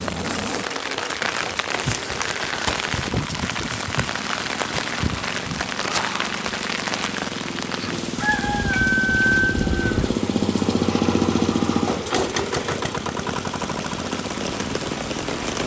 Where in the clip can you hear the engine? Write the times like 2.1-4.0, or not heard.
0.0-15.6.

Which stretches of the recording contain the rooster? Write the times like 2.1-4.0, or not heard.
8.2-10.2.